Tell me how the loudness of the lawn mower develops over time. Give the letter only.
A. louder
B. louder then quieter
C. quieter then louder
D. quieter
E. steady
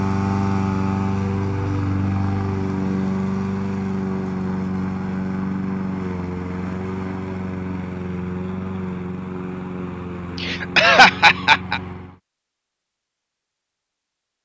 D.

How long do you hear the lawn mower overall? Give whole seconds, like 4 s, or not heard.
12 s.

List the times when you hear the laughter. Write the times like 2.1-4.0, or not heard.
10.3-11.8.